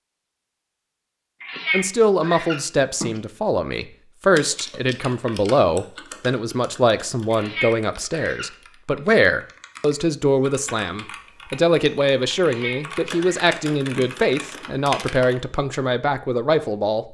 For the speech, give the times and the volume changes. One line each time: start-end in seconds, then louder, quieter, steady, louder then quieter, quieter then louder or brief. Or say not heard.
1.7-17.1 steady.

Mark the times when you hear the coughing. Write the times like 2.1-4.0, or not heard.
not heard.